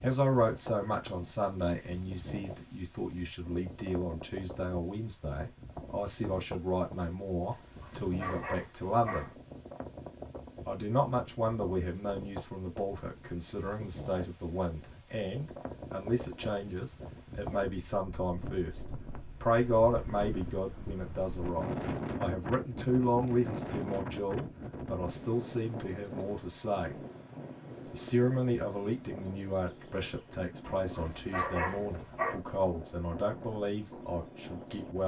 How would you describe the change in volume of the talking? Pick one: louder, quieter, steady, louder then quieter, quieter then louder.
steady.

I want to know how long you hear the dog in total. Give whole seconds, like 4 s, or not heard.
4 s.